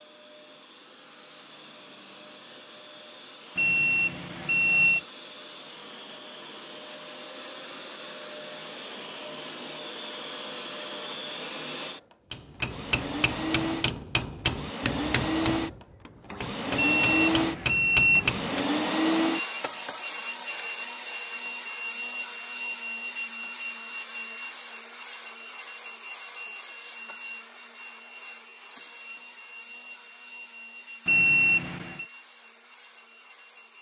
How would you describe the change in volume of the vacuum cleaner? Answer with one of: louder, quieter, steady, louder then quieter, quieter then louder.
louder then quieter.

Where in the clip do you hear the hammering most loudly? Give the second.
18 s.